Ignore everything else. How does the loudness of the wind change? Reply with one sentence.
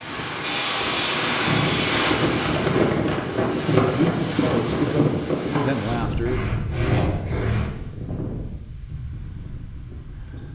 The loudness of the wind goes down.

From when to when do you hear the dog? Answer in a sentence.
The dog can't be heard in this clip.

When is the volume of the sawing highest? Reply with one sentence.
The volume of the sawing peaks at 7 seconds.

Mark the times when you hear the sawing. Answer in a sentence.
You can hear the sawing from 0.4 to 2.0 s and from 6.2 to 7.7 s.